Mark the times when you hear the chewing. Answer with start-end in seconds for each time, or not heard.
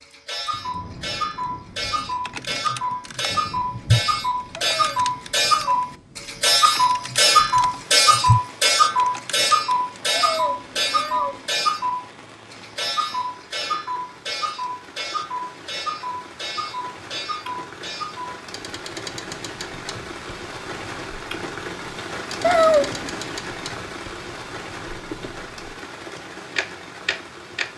not heard.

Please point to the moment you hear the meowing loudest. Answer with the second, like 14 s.
23 s.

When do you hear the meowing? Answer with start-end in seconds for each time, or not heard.
4.5-5.8, 10.1-11.4, 22.4-23.1.